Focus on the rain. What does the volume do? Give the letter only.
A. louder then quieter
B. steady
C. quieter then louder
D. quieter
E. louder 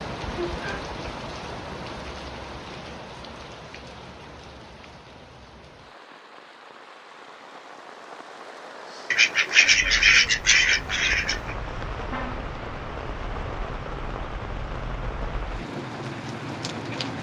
C.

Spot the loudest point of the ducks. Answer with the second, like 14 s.
10 s.